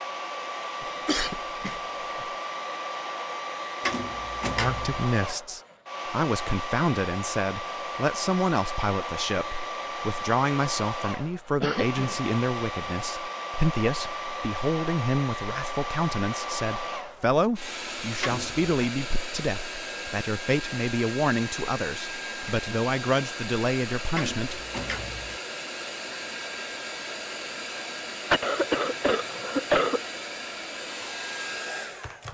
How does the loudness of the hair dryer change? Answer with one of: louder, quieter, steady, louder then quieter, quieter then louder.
steady.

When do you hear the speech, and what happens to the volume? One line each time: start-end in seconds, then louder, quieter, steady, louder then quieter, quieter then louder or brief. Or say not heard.
4.5-24.6 steady.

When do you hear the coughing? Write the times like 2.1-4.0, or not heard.
0.8-2.2, 11.6-12.2, 28.3-30.0.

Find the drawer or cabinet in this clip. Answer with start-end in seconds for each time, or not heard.
3.8-5.0, 18.2-18.7, 24.1-25.4.